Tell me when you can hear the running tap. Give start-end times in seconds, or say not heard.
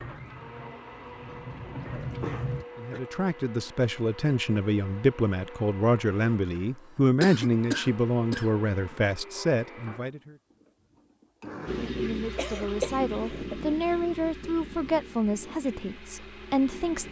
0.0-2.6, 11.7-17.0.